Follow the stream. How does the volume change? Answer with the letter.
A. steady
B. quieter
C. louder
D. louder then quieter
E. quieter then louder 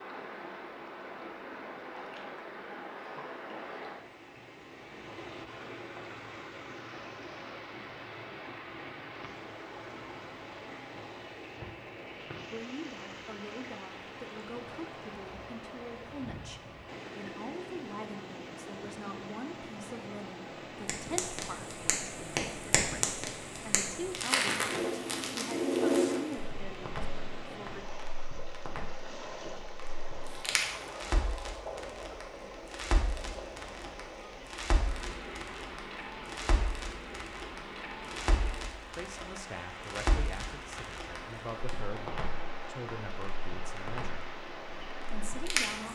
A.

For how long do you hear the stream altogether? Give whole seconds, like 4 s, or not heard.
46 s.